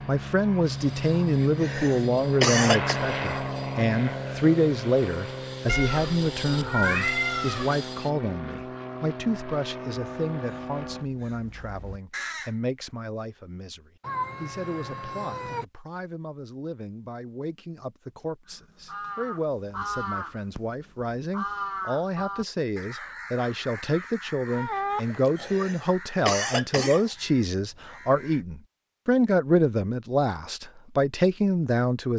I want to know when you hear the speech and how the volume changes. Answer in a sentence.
The speech can be heard from 0.1 to 32.1 s, getting quieter then louder.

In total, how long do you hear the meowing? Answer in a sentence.
The meowing can be heard for 5 seconds in total.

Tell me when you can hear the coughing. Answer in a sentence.
You can hear the coughing from 1.4 to 3.0 s and from 25.2 to 27.1 s.